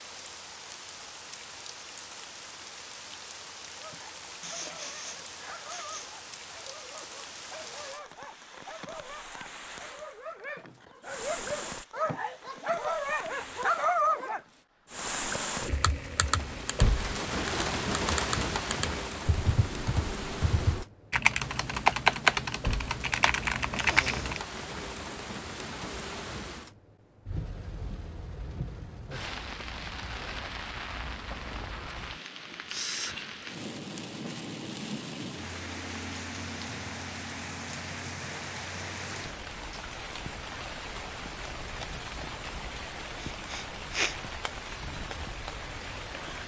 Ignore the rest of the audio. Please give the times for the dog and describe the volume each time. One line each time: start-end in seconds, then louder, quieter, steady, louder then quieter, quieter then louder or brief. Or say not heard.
3.8-14.6 louder.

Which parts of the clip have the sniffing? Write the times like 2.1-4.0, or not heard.
4.4-6.1, 23.8-24.4, 43.2-44.1.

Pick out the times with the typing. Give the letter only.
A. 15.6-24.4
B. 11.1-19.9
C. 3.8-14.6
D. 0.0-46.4
A.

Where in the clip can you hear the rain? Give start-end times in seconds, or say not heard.
0.0-46.4.